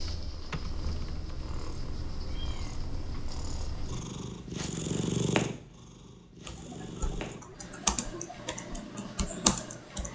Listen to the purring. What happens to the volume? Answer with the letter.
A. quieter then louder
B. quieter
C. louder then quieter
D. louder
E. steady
C.